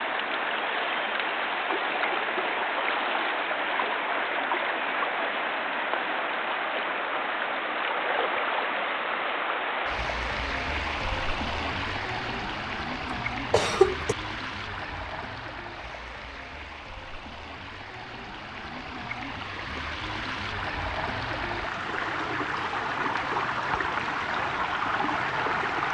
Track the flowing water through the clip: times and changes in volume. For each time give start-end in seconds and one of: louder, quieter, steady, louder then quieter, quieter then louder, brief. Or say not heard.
0.0-25.8 quieter then louder.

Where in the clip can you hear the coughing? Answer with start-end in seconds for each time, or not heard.
13.1-14.2.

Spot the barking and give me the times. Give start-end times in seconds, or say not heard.
not heard.